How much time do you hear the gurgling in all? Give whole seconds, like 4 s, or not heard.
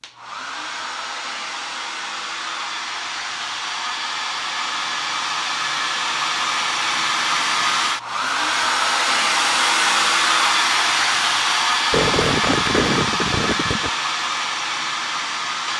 2 s.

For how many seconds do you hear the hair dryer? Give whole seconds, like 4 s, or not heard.
16 s.